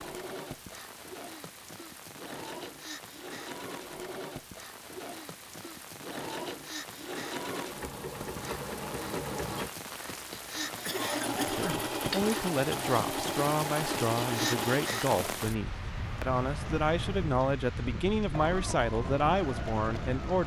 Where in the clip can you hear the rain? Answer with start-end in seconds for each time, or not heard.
0.0-20.4.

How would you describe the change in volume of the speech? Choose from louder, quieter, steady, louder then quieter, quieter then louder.
steady.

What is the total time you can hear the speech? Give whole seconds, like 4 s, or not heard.
9 s.